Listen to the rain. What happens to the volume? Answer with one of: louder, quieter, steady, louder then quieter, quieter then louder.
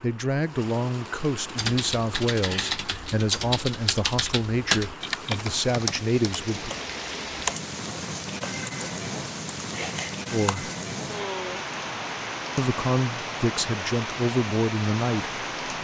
louder.